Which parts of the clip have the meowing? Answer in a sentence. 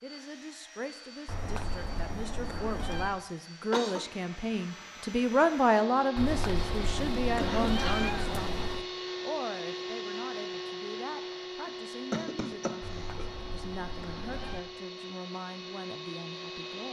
The meowing can be heard from 1.2 to 3.2 s, from 6.2 to 8.8 s and from 12.8 to 14.7 s.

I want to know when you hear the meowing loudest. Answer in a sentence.
The loudest moment of the meowing is at 8 seconds.